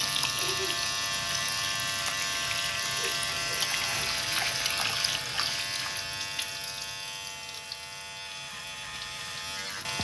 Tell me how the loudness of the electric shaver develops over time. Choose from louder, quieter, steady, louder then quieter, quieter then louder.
quieter.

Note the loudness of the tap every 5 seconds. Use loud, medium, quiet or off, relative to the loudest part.
loud, medium.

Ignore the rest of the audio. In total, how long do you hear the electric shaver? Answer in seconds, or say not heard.
10 s.